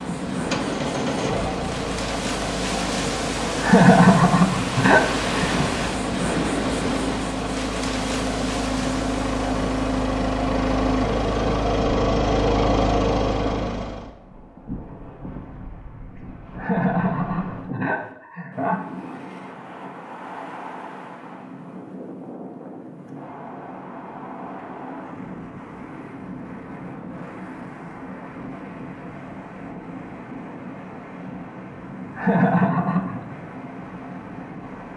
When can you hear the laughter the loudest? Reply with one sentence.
The volume of the laughter peaks at 4 seconds.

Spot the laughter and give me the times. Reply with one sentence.
You can hear the laughter from 3.6 to 5.5 s, from 16.6 to 19.0 s and from 32.1 to 33.4 s.